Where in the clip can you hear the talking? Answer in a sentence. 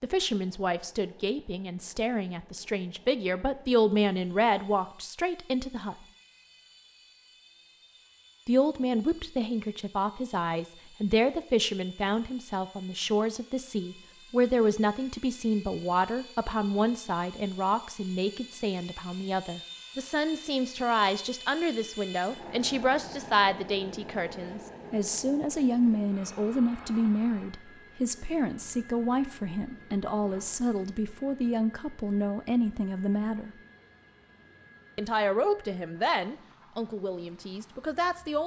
The talking can be heard from 0.0 to 6.0 s, from 8.4 to 33.5 s and from 35.0 to 38.4 s.